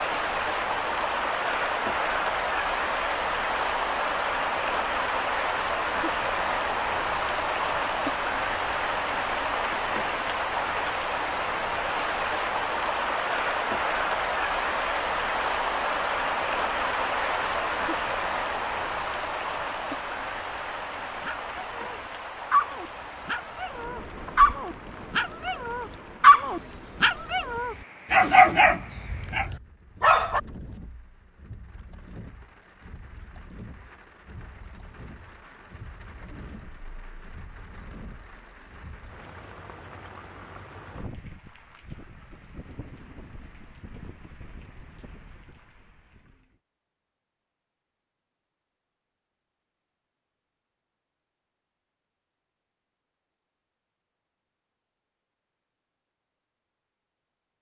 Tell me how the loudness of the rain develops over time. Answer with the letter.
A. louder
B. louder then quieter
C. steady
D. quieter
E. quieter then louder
D.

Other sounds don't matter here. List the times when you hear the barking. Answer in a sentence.
You can hear the barking from 21.2 to 30.4 s.